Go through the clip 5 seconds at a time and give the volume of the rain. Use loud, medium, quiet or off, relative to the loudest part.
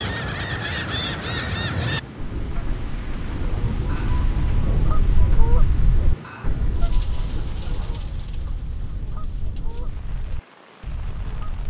loud, medium, quiet.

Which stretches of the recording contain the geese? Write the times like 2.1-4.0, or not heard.
0.0-11.6.